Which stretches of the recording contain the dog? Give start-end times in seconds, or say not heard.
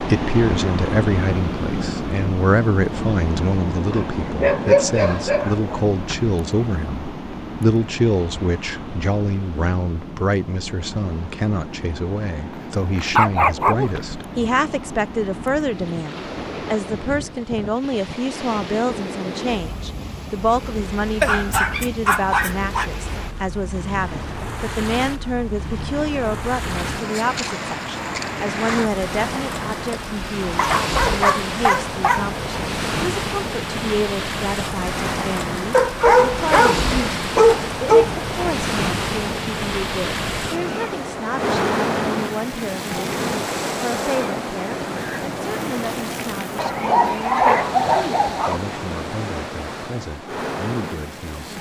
3.9-5.8, 12.9-14.5, 21.2-22.9, 30.6-32.2, 35.7-38.1, 46.5-48.6.